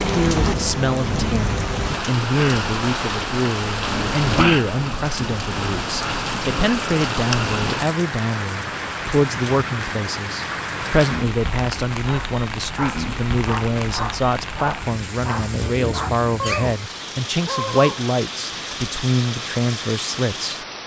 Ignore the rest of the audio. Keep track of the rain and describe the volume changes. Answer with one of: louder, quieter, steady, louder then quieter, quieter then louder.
quieter.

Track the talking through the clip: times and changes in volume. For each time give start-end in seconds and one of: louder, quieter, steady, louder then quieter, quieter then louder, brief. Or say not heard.
0.1-20.6 steady.